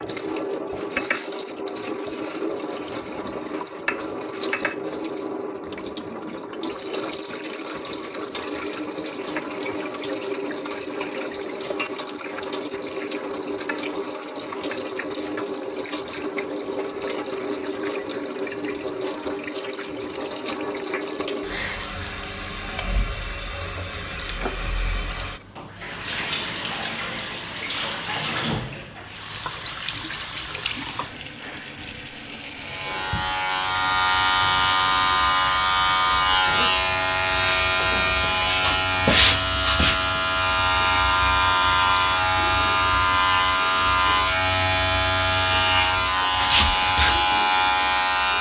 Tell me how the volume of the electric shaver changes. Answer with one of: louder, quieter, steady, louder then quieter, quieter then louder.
steady.